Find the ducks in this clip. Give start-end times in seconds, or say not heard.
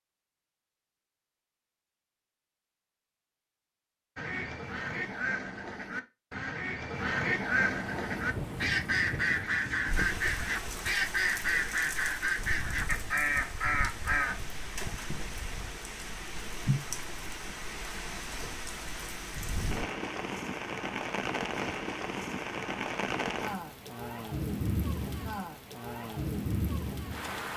4.2-14.4.